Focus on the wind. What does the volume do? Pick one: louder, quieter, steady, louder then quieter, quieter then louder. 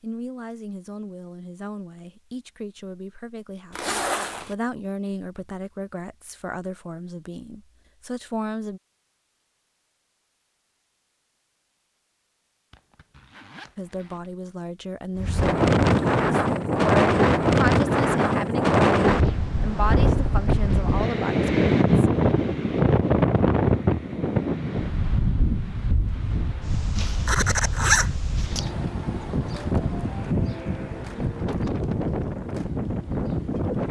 quieter.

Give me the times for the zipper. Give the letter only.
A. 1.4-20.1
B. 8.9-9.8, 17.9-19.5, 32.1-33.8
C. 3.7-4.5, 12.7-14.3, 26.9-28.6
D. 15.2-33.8
C.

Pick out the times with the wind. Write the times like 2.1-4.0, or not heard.
15.2-33.8.